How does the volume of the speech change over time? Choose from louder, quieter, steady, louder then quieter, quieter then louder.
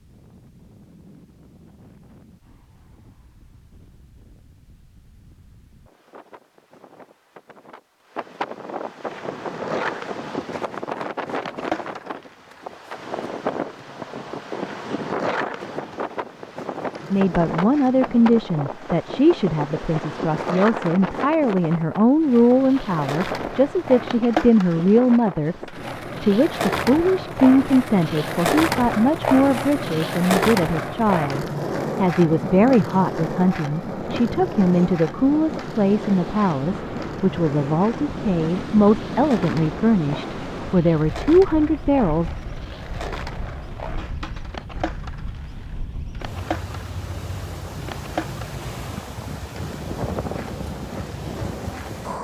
steady.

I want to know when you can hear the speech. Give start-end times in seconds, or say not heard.
17.1-42.3.